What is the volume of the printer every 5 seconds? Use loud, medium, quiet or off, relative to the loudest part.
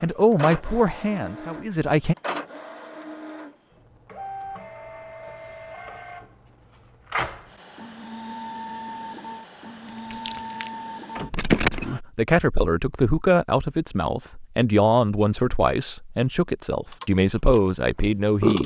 loud, loud, loud, off.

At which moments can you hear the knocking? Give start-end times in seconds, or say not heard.
11.3-11.9.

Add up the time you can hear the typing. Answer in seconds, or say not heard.
2 s.